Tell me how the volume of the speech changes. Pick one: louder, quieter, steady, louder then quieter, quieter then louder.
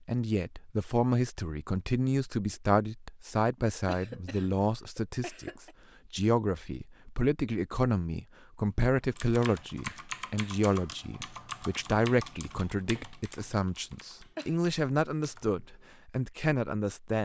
steady.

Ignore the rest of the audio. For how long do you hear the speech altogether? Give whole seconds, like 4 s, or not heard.
17 s.